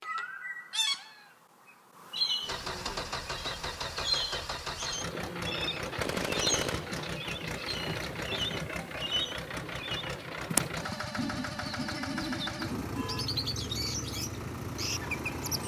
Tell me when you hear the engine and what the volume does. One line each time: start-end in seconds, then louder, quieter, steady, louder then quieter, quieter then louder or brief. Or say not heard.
2.4-15.6 steady.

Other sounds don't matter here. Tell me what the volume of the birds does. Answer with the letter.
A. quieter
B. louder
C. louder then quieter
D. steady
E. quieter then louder
D.